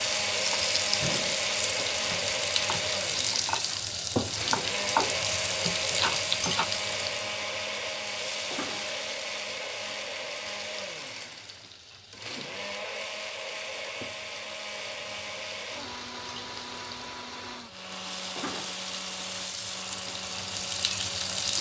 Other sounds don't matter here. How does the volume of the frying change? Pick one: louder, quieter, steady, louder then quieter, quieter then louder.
quieter then louder.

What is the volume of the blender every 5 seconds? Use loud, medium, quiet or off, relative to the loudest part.
loud, loud, medium, medium, medium.